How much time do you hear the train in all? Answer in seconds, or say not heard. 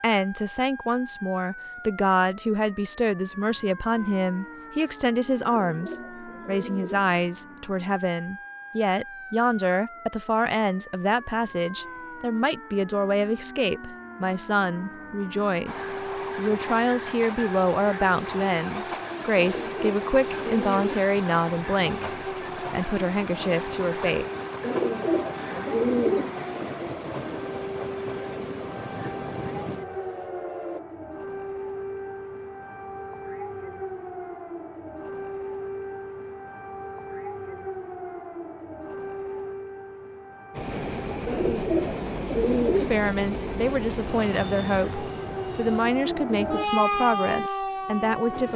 23 s.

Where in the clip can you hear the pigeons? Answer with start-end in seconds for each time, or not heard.
5.4-7.2, 19.4-21.1, 24.6-26.4, 41.2-43.0.